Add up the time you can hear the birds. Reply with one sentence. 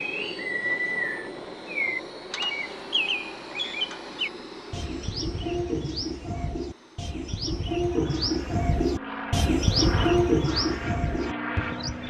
The birds can be heard for 12 seconds in total.